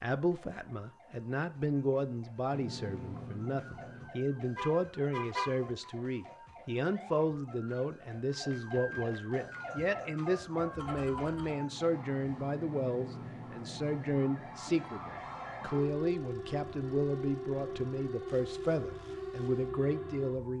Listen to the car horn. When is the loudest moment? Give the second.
5 s.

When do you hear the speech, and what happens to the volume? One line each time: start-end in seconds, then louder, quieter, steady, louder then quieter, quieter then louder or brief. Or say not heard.
0.0-20.5 steady.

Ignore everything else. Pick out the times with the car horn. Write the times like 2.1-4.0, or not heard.
4.5-5.5, 10.8-11.6.